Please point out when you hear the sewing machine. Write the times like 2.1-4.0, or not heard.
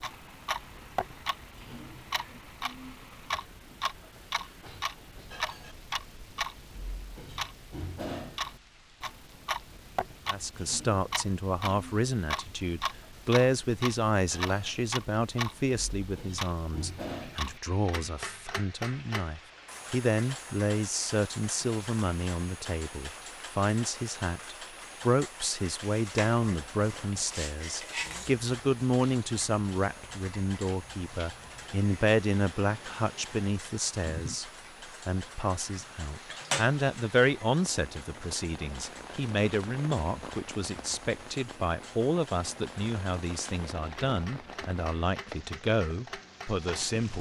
not heard.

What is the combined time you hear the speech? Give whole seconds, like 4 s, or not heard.
37 s.